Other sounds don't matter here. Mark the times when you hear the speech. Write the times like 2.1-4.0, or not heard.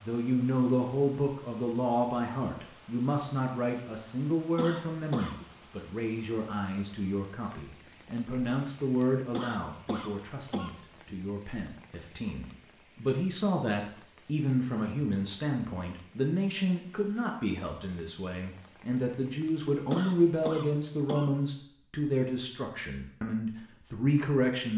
0.0-24.7.